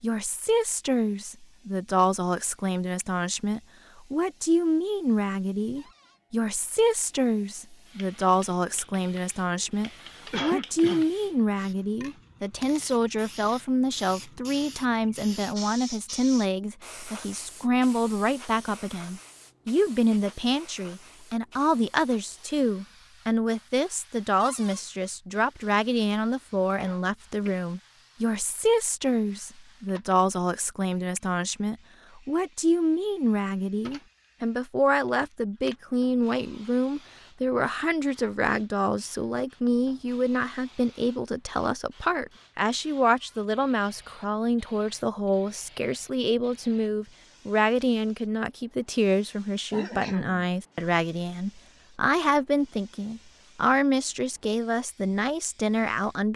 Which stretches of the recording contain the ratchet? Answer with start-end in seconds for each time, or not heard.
not heard.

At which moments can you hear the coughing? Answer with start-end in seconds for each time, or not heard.
10.3-11.1, 26.8-27.6, 49.7-50.5.